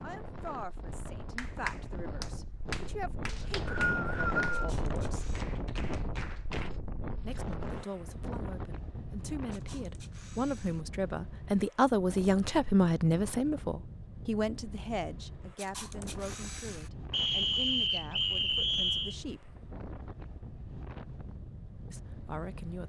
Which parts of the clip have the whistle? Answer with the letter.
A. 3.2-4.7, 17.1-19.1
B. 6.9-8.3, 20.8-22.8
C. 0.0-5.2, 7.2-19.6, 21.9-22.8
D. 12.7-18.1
A.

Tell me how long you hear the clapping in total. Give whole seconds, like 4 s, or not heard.
5 s.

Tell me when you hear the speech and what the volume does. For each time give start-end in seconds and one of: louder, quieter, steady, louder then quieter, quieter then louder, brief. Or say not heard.
0.0-5.2 steady
7.2-19.6 louder then quieter
21.9-22.8 brief.